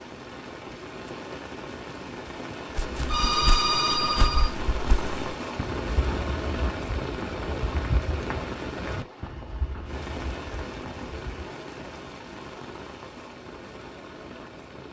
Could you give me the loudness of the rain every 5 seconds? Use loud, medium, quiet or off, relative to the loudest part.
loud, loud, medium.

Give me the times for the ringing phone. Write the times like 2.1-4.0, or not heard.
3.1-4.5.